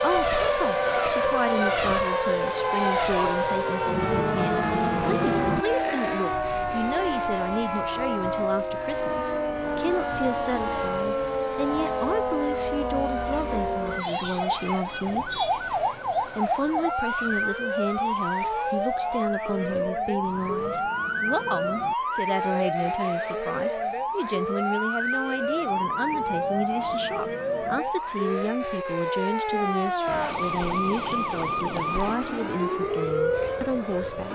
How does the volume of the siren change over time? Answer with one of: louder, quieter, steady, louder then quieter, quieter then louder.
steady.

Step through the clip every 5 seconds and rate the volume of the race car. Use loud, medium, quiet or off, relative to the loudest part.
loud, medium, quiet, quiet, quiet, quiet, quiet.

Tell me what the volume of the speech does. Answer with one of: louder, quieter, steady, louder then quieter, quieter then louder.
steady.